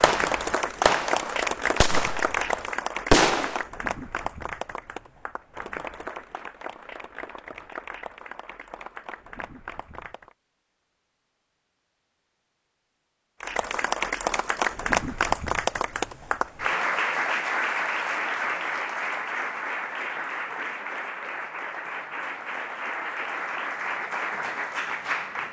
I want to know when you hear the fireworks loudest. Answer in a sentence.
The loudest moment of the fireworks is at 3 seconds.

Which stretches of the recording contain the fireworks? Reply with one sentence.
You can hear the fireworks from 0.0 to 3.6 s.